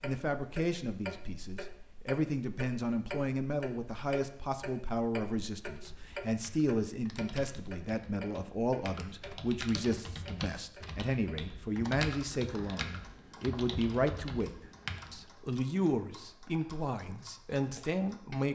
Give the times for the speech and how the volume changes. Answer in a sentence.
You can hear the speech from 0.0 to 18.5 s, at a steady volume.